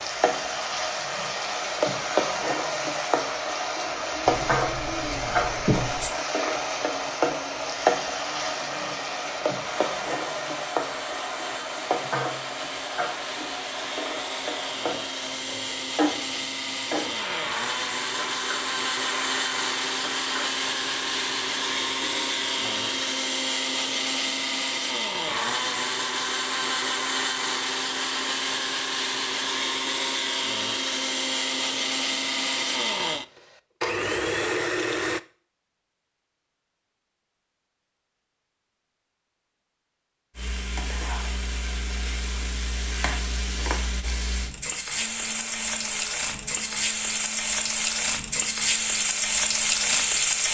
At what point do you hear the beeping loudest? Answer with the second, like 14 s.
6 s.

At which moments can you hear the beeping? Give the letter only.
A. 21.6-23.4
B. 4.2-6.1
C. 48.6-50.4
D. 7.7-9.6
B.